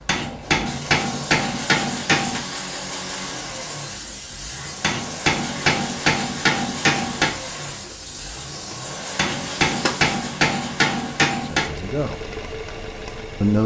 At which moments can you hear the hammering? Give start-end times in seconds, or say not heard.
0.1-2.5, 4.8-7.3, 9.2-11.7.